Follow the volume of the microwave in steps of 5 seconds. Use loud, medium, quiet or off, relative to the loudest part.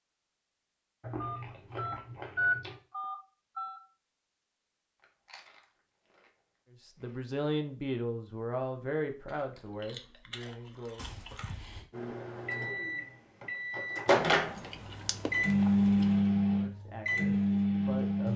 off, off, medium, loud.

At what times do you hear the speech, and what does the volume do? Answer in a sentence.
The speech can be heard from 6.8 to 11.1 s, getting quieter; and briefly from 16.5 to 18.3 s.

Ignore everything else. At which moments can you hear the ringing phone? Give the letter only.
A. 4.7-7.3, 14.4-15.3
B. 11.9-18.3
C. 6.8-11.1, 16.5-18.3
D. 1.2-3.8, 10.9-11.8
D.